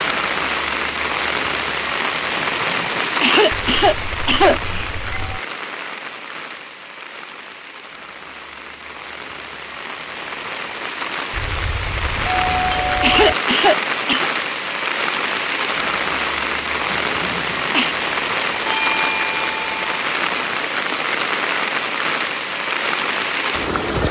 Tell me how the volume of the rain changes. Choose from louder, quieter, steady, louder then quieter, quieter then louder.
quieter then louder.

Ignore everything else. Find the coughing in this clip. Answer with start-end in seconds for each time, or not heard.
2.4-5.0, 12.2-14.3, 16.9-17.9.